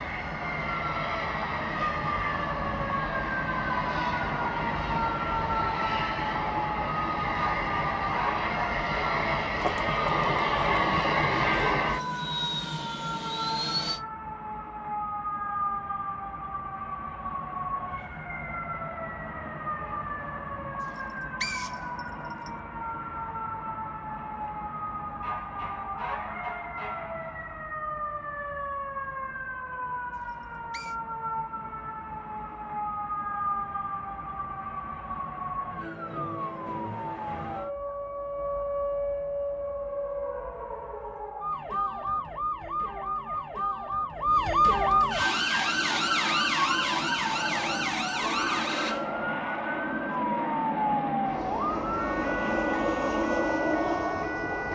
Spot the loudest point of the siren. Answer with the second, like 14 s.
45 s.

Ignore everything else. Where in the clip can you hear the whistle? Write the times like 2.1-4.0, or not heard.
20.9-22.5, 30.3-30.9.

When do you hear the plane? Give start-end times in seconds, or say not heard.
0.0-14.0, 45.1-54.7.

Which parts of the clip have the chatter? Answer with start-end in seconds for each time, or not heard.
not heard.